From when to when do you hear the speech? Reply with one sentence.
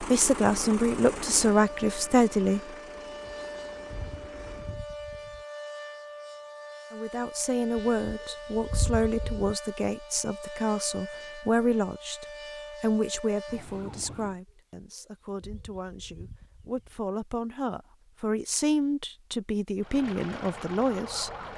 You can hear the speech from 0.0 to 2.6 s and from 6.9 to 21.5 s.